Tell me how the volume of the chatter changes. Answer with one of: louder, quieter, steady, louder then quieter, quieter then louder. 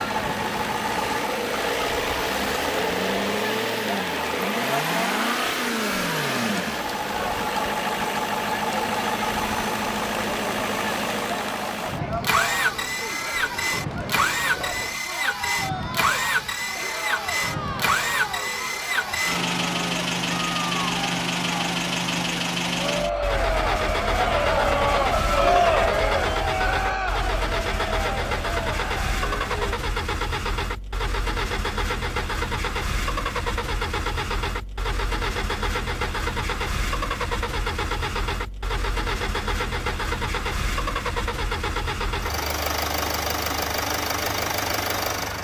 louder.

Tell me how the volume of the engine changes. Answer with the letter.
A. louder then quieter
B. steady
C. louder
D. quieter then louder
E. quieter
B.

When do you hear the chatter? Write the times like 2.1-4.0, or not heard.
0.0-29.8.